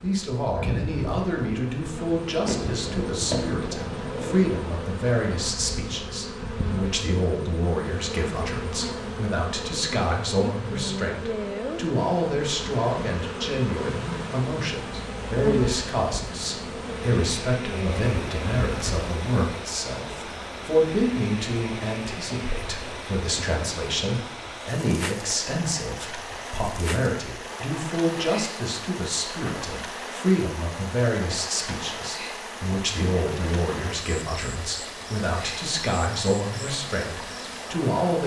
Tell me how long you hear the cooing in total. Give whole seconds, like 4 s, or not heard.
2 s.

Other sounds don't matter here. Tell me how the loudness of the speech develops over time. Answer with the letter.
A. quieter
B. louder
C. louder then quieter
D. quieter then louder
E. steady
E.